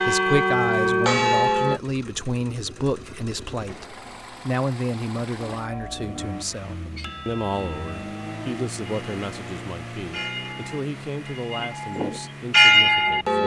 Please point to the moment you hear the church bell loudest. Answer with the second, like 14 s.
13 s.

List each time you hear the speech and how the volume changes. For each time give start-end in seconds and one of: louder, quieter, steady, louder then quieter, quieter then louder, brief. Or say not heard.
0.1-13.4 quieter.